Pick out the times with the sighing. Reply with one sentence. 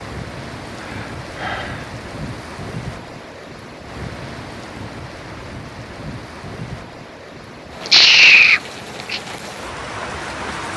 You can hear the sighing from 0.8 to 1.9 s and from 7.8 to 9.2 s.